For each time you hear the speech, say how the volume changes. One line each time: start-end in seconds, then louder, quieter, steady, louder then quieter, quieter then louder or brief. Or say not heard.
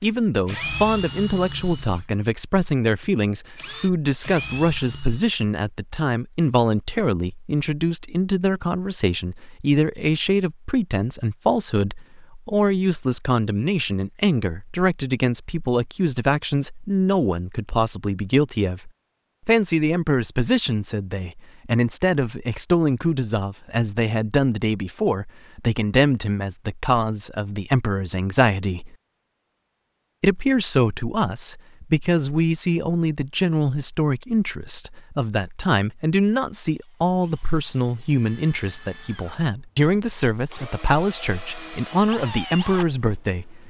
0.0-28.9 steady
30.2-43.6 steady.